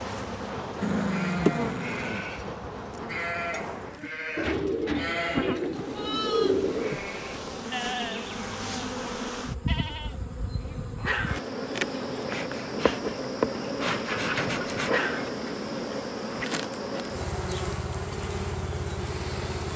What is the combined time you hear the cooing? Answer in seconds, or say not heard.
4 s.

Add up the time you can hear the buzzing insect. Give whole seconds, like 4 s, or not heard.
20 s.